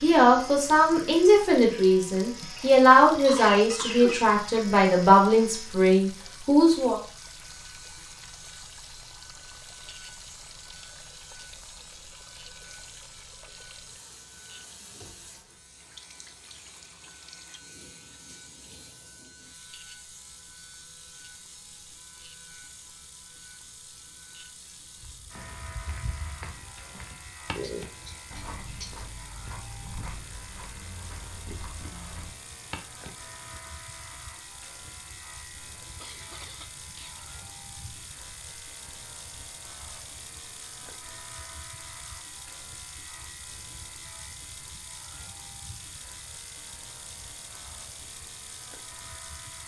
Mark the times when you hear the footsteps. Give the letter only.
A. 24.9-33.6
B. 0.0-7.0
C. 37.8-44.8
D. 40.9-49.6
A.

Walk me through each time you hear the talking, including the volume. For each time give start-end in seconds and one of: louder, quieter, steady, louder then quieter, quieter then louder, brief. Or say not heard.
0.0-7.0 steady.